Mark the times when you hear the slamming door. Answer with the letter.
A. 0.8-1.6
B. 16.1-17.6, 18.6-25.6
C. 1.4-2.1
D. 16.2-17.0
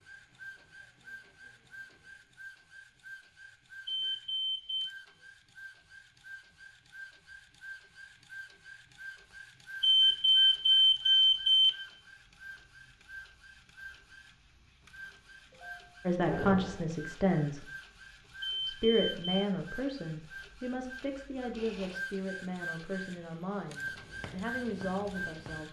D.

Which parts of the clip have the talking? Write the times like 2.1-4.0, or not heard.
16.1-17.6, 18.6-25.6.